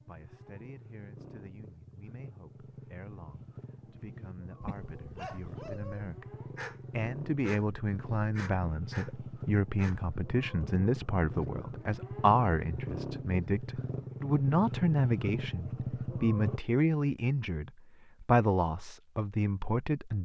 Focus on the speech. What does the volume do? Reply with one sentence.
The volume of the speech goes up.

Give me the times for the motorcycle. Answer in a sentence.
The motorcycle can be heard from 0.0 to 16.6 s.